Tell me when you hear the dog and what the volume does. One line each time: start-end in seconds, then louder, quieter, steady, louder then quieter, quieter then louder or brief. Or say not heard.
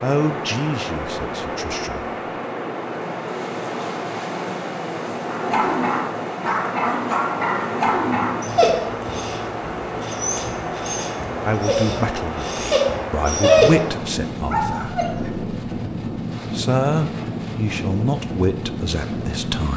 5.3-15.3 quieter then louder.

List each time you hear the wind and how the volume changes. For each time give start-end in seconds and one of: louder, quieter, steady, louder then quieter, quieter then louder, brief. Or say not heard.
0.0-19.7 steady.